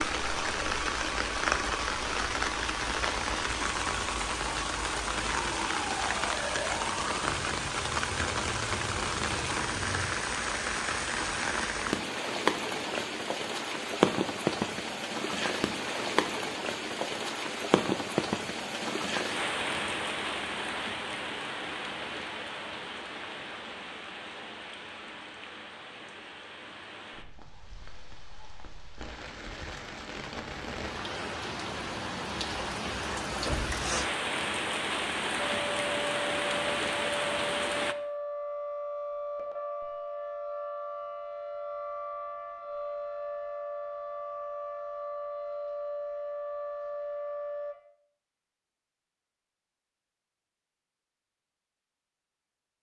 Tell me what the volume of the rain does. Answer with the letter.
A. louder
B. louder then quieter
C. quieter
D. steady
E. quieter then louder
E.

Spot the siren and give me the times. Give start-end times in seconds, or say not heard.
0.1-10.1, 35.5-47.8.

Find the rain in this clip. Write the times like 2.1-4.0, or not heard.
0.0-38.0.